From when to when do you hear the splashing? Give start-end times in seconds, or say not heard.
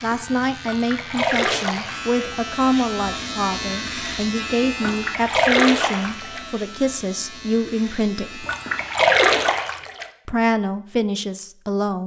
0.6-2.1, 4.8-6.4, 8.4-10.1.